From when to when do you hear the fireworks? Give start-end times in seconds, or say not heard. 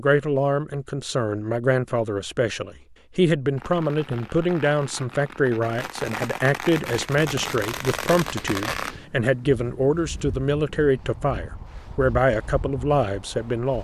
3.5-8.9.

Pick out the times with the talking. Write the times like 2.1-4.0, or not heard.
0.0-13.7.